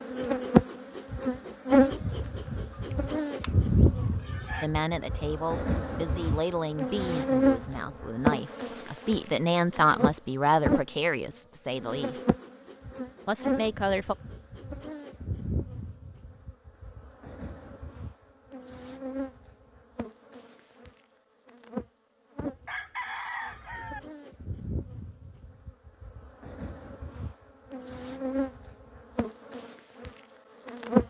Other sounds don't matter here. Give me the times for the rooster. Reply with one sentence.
You can hear the rooster from 2.7 to 4.7 s and from 22.5 to 24.0 s.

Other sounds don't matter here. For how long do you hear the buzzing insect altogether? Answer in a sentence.
The buzzing insect can be heard for 30 seconds in total.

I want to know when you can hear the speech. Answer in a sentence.
You can hear the speech from 4.6 to 12.2 s and from 13.2 to 14.2 s.